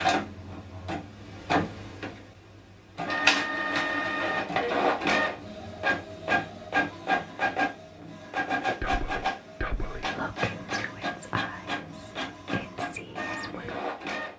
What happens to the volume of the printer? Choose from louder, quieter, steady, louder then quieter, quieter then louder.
louder then quieter.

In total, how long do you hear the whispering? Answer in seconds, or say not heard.
5 s.